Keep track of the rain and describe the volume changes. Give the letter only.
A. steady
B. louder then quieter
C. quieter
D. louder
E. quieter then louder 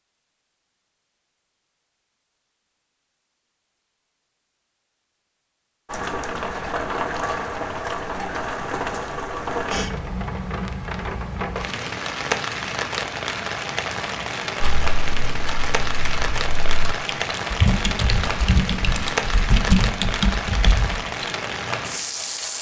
A.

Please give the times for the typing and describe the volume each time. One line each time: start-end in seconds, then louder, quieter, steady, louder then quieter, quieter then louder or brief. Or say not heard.
14.6-21.4 louder.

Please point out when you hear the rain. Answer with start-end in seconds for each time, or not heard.
5.8-22.5.